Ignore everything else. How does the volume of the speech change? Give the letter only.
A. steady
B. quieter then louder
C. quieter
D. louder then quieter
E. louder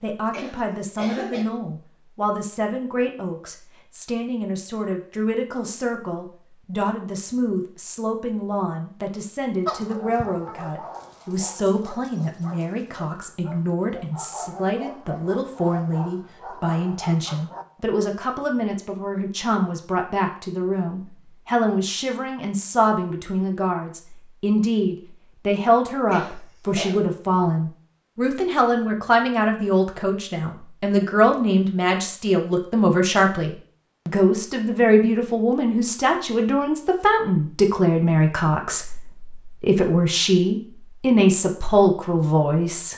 E.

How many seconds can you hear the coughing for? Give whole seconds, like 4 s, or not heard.
2 s.